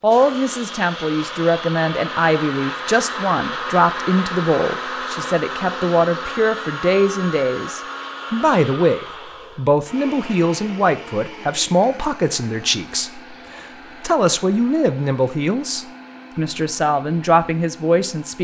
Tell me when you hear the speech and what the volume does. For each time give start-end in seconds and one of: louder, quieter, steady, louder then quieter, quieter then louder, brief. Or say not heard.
0.0-18.4 steady.